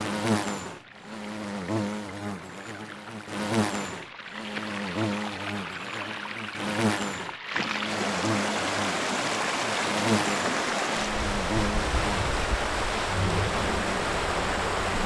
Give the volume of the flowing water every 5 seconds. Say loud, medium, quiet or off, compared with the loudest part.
quiet, loud, loud.